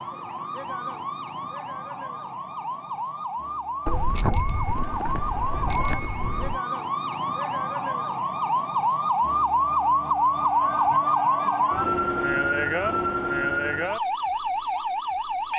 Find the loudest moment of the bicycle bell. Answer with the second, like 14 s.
4 s.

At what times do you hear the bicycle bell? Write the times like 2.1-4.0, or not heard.
3.9-6.5.